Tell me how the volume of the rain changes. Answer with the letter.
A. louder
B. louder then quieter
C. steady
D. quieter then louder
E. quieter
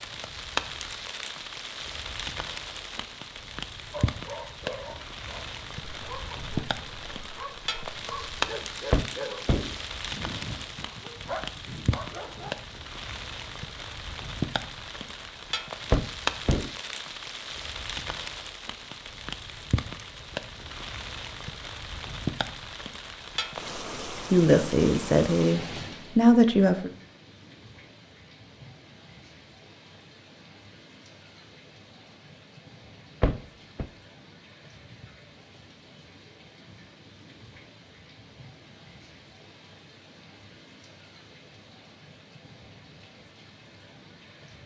E.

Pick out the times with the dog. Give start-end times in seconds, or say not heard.
3.9-12.6.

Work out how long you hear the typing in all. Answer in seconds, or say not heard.
not heard.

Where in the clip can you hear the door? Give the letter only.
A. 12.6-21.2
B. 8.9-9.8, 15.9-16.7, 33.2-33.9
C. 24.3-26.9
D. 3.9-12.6
B.